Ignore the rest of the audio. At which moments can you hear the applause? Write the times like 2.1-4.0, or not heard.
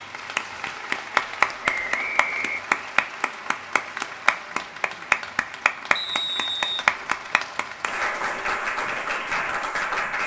0.0-10.2.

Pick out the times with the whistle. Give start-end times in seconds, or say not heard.
1.6-2.6, 6.0-6.8.